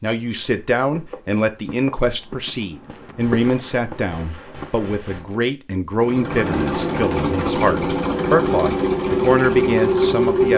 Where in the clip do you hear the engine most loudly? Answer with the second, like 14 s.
10 s.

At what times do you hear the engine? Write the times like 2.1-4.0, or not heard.
6.0-10.5.